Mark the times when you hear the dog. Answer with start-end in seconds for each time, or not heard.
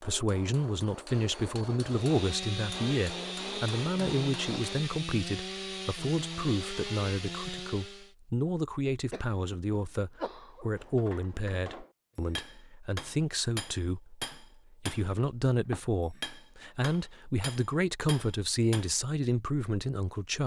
not heard.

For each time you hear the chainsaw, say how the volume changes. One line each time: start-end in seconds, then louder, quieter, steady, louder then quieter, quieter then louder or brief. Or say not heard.
1.8-8.2 steady.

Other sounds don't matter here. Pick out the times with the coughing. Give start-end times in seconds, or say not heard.
9.1-10.7.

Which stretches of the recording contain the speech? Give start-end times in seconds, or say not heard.
0.0-20.4.